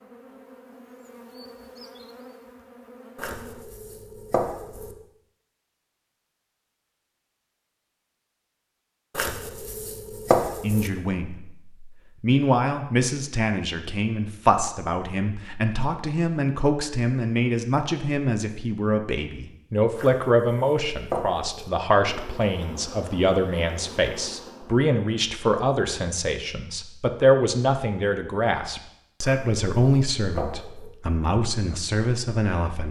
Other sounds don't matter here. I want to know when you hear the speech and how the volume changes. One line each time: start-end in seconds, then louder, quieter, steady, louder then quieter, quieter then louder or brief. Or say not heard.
10.6-32.8 steady.